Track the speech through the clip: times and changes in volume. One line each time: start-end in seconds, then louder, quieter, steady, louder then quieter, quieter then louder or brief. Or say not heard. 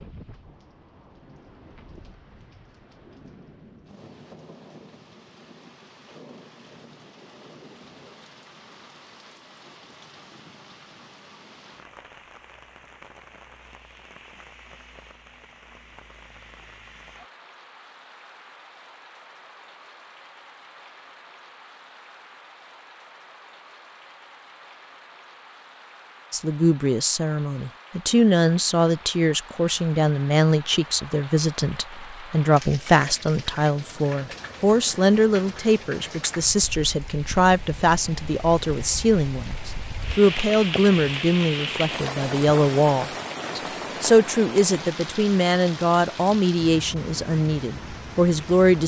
26.3-48.8 steady.